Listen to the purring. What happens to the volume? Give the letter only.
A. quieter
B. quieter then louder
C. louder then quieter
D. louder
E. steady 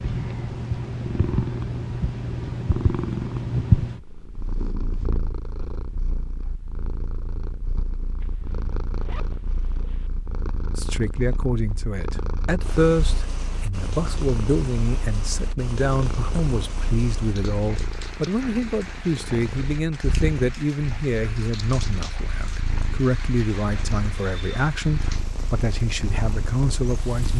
A.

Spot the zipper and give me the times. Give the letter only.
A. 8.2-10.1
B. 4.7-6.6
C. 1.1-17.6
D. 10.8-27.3
A.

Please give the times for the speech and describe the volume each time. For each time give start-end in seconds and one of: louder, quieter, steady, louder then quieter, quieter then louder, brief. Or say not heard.
10.8-27.3 steady.